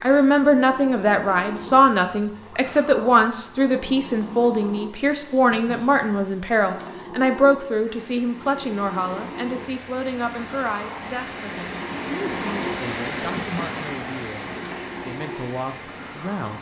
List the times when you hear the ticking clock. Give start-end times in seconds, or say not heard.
not heard.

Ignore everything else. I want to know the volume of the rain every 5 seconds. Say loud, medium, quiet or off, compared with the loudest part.
off, medium, loud, medium.